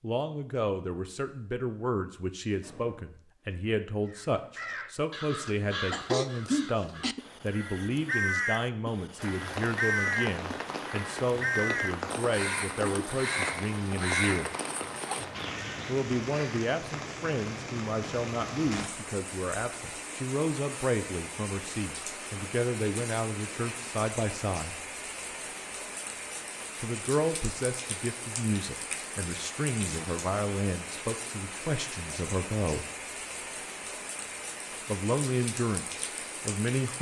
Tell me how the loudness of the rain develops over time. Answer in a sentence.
The volume of the rain stays about the same.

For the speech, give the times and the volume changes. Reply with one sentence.
You can hear the speech from 0.0 to 14.5 s, at a steady volume; from 15.8 to 24.8 s, at a steady volume; from 26.8 to 32.9 s, at a steady volume; and briefly from 34.9 to 36.9 s.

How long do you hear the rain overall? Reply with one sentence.
You can hear the rain for 28 seconds altogether.